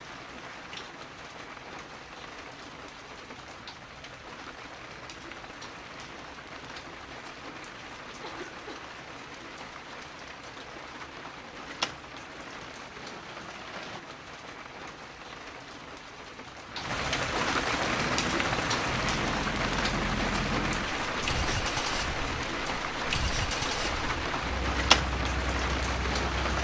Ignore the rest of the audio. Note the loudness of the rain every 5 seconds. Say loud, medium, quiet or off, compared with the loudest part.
quiet, quiet, medium, loud, loud, loud.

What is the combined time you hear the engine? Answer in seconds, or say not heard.
9 s.